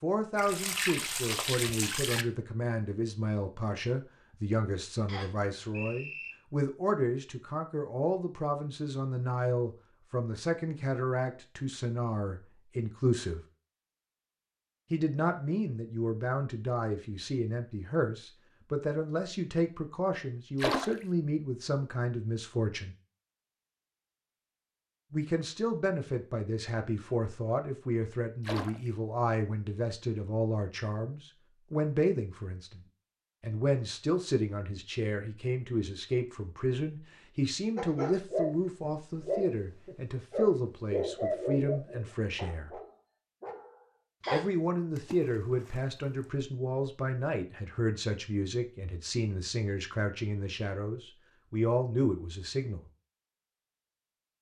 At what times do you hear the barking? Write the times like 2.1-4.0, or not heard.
37.8-38.5, 39.2-44.5.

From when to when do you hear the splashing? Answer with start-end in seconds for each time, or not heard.
0.3-2.2, 20.6-21.1, 28.4-28.9, 45.0-46.3.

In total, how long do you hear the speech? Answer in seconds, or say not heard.
47 s.